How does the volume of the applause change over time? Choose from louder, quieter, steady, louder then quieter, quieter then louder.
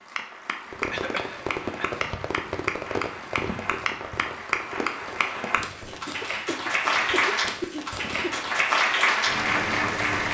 louder.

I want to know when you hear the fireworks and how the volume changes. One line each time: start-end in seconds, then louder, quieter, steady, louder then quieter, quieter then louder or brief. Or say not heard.
0.7-8.5 quieter.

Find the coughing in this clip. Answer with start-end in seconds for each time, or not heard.
0.9-2.0, 6.0-8.4.